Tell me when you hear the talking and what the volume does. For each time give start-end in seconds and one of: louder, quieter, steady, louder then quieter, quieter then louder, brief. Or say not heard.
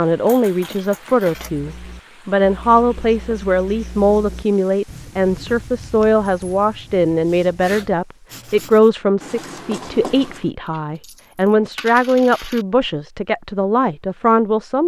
0.0-14.8 steady.